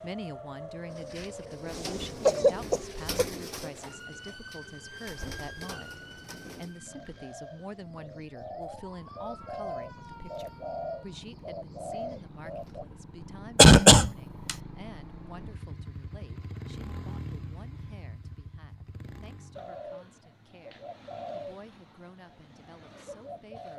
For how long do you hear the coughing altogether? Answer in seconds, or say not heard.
3 s.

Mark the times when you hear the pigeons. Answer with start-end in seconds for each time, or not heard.
0.9-12.8, 19.6-23.7.